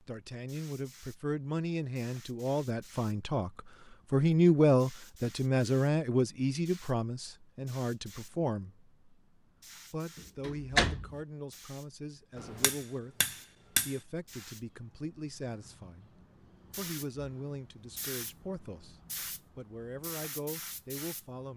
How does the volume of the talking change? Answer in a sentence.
The loudness of the talking goes up, then down.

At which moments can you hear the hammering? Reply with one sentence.
You can hear the hammering from 12.3 to 13.9 s.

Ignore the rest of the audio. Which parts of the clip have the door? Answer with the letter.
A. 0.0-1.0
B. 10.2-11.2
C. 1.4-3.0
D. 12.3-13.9
B.